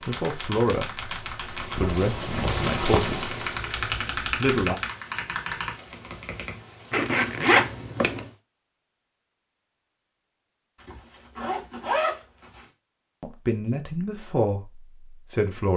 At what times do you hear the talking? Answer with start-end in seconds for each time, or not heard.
0.1-3.4, 4.2-4.8, 13.2-15.7.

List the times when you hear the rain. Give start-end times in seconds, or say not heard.
0.0-8.4.